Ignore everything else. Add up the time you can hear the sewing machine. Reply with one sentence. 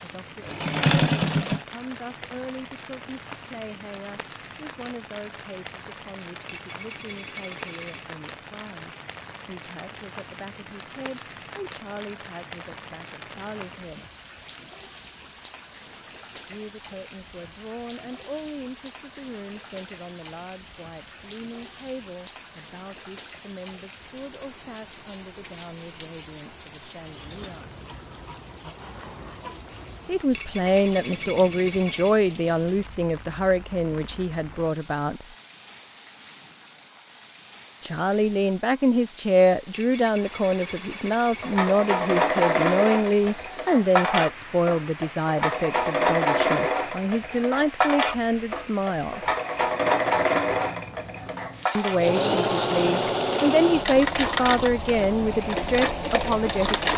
You can hear the sewing machine for 17 seconds altogether.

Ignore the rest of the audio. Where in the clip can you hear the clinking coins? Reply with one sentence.
You can hear the clinking coins from 6.5 to 8.1 s, from 30.4 to 32.1 s and from 39.7 to 41.6 s.